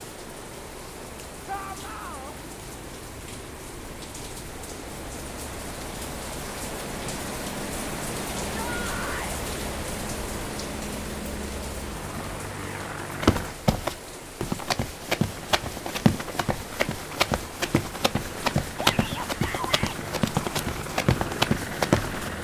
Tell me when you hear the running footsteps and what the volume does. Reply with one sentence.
The running footsteps can be heard from 13.2 to 22.3 s, at a steady volume.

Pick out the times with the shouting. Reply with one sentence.
You can hear the shouting from 1.4 to 2.4 s, from 8.5 to 9.4 s and from 18.8 to 20.0 s.